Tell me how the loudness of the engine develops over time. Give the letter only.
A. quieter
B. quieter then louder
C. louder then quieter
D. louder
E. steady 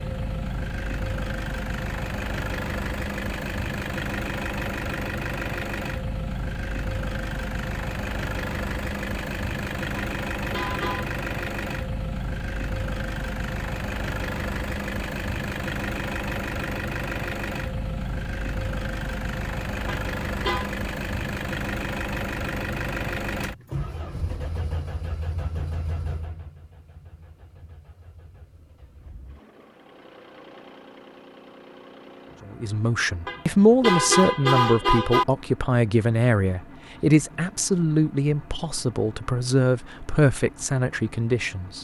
A.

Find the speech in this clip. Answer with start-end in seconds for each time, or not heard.
32.5-41.7.